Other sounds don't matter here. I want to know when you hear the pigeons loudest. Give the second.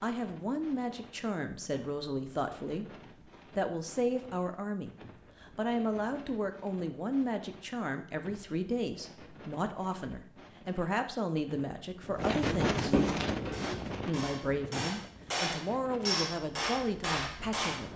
13 s.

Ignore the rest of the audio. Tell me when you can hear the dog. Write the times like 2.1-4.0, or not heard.
not heard.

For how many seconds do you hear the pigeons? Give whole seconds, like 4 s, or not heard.
2 s.